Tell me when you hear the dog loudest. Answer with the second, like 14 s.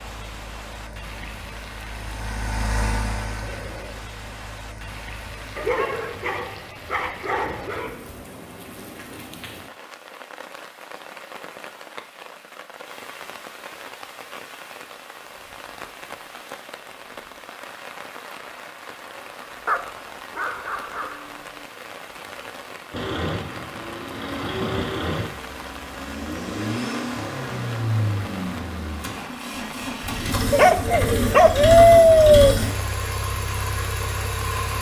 32 s.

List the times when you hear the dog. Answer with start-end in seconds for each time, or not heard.
5.5-8.1, 19.6-21.4, 30.5-32.5.